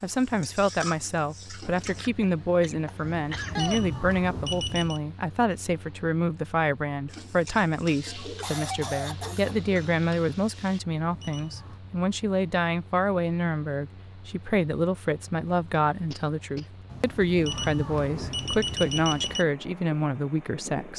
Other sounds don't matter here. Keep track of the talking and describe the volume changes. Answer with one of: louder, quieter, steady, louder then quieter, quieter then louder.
steady.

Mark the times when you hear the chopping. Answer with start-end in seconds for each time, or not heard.
not heard.